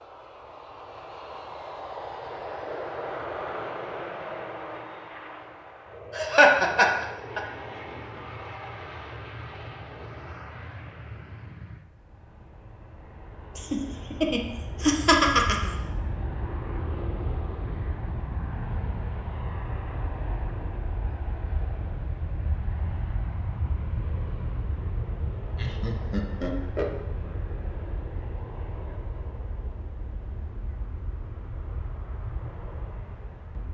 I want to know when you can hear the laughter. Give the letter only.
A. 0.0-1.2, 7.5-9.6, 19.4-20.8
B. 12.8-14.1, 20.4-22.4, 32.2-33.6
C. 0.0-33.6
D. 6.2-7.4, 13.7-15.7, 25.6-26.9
D.